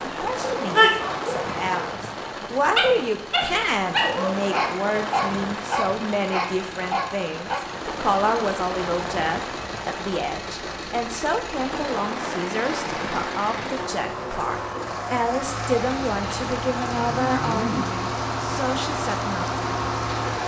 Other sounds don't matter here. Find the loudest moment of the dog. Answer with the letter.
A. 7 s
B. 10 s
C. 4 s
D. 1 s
D.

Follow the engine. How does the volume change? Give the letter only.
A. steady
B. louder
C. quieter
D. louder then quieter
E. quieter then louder
B.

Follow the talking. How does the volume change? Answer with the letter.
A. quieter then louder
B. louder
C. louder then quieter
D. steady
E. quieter
D.